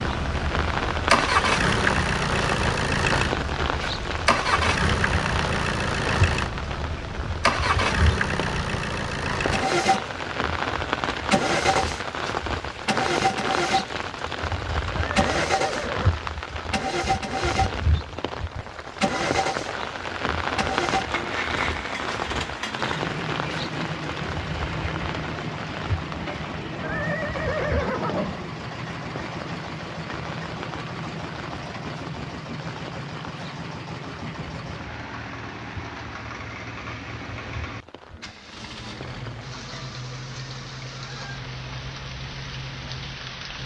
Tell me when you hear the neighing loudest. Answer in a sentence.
The volume of the neighing peaks at 28 seconds.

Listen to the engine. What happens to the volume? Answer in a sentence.
The loudness of the engine goes down.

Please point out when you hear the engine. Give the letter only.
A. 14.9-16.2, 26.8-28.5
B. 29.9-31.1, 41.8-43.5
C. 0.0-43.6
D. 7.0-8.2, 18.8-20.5
C.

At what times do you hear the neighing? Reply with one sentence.
The neighing can be heard from 14.9 to 16.2 s and from 26.8 to 28.5 s.